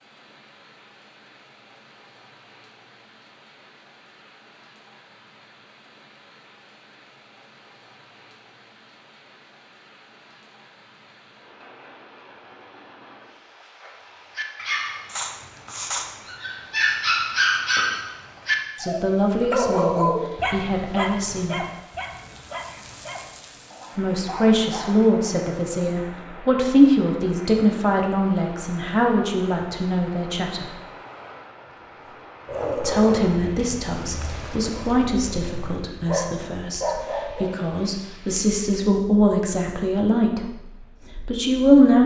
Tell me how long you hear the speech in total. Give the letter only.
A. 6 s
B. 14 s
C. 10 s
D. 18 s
D.